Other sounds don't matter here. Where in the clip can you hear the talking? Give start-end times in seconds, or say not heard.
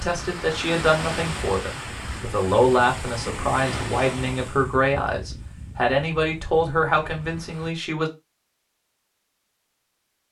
0.0-8.1.